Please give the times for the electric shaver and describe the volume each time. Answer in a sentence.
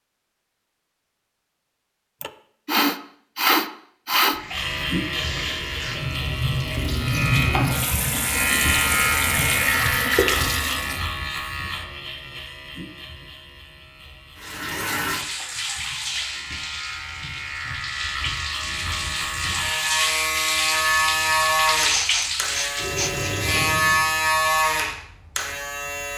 You can hear the electric shaver from 4.5 to 26.1 s, getting quieter then louder.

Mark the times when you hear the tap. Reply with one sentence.
You can hear the tap from 4.3 to 11.1 s and from 14.3 to 24.1 s.